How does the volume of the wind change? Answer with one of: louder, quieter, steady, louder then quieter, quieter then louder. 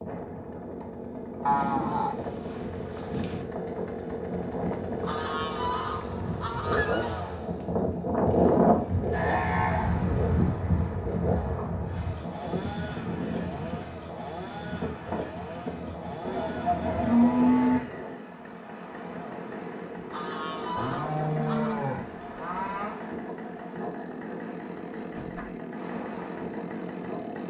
louder then quieter.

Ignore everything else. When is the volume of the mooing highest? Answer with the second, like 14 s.
17 s.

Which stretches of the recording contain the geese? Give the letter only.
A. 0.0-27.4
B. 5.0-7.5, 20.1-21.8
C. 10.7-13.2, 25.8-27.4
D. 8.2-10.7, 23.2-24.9
B.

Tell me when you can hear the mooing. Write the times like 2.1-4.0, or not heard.
1.4-3.5, 9.1-10.3, 16.2-17.8, 20.8-22.9.